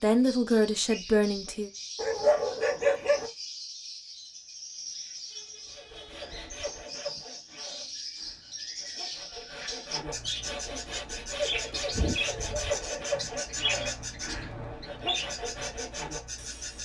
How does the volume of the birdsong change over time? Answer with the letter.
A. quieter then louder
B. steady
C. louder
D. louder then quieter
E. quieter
C.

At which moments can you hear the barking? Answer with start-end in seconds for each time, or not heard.
1.9-3.3, 12.3-13.6.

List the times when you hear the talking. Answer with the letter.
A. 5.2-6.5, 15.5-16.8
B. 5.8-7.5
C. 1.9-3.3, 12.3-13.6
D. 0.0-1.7
D.